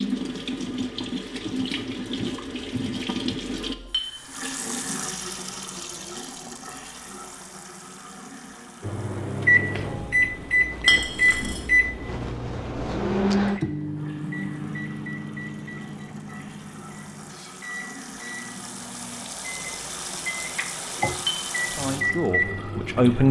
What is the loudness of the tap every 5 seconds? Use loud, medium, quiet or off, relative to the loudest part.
loud, medium, quiet, medium, medium.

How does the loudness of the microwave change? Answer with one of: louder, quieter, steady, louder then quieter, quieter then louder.
quieter then louder.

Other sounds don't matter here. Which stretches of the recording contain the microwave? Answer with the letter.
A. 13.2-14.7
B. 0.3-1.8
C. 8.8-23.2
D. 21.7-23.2
C.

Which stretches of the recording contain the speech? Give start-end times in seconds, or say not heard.
21.7-23.2.